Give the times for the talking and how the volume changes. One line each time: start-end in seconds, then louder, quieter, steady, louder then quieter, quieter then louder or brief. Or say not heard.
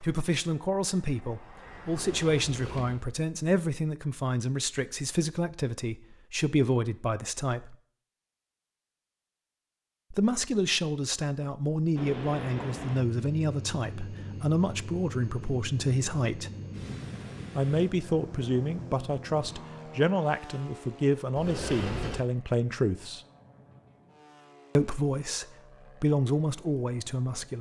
0.0-7.8 steady
10.1-16.5 steady
17.6-23.2 steady
24.8-27.5 brief.